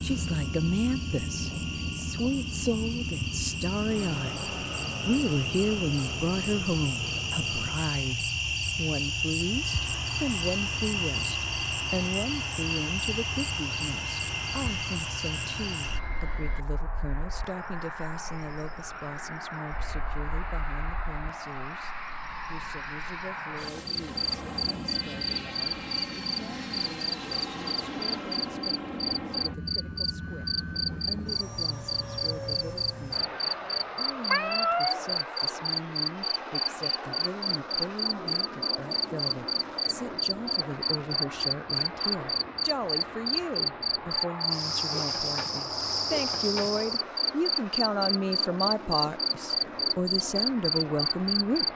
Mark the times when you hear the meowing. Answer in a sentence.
The meowing can be heard from 34.2 to 35.0 s.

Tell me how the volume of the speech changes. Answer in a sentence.
The volume of the speech goes down, then up.